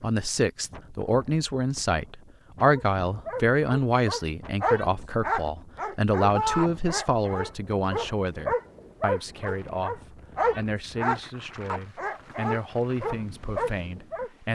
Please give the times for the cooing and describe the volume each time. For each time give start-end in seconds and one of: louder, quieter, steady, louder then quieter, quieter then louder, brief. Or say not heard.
not heard.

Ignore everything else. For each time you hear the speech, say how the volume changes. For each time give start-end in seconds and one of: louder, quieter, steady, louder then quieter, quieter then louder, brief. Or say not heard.
0.0-14.5 quieter.